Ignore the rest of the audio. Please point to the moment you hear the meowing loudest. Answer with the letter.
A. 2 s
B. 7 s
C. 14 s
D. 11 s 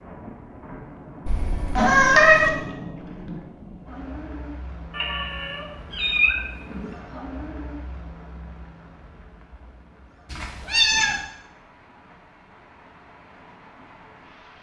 A.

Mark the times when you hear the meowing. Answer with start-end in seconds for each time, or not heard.
1.2-2.5, 4.9-6.9, 10.3-11.2.